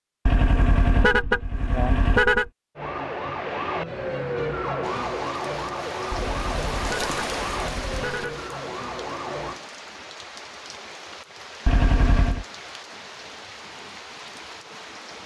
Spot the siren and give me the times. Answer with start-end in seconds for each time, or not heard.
2.8-9.6.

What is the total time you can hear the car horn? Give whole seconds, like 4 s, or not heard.
5 s.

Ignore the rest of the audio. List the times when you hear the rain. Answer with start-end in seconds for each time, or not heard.
4.8-15.2.